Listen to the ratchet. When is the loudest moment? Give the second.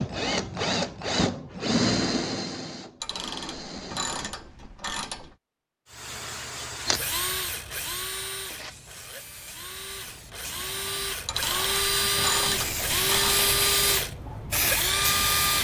12 s.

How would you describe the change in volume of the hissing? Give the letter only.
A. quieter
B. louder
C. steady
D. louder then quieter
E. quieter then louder
E.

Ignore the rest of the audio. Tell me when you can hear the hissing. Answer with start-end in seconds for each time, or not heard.
5.8-15.6.